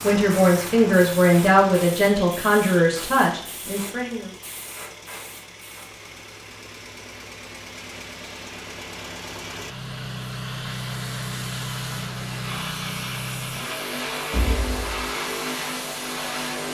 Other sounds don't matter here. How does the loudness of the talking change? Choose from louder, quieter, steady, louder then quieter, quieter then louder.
quieter.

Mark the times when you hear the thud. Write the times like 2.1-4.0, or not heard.
14.3-15.0.